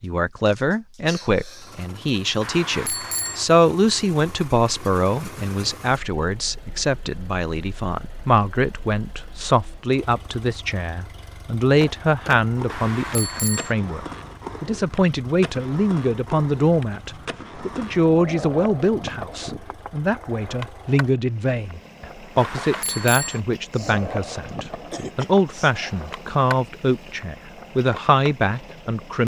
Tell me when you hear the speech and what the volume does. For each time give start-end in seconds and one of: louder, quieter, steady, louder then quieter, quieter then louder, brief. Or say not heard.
0.0-29.2 steady.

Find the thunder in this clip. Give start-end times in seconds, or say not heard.
not heard.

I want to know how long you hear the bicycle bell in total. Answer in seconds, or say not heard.
3 s.